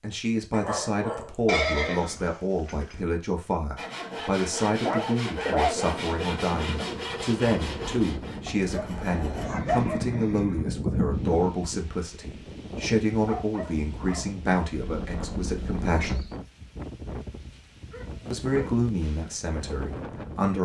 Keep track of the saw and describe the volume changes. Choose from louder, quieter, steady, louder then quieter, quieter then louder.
quieter.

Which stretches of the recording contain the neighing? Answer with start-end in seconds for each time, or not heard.
1.4-3.0, 9.4-11.3, 14.7-16.4.